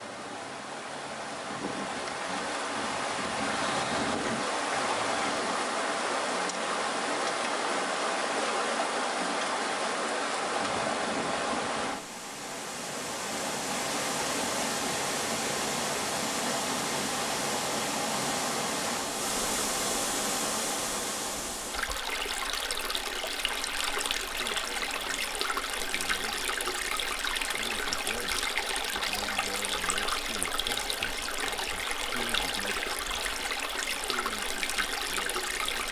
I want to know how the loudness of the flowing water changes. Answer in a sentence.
The loudness of the flowing water stays about the same.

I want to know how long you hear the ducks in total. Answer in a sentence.
The ducks can't be heard in this clip.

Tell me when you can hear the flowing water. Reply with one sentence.
You can hear the flowing water from 0.0 to 35.8 s.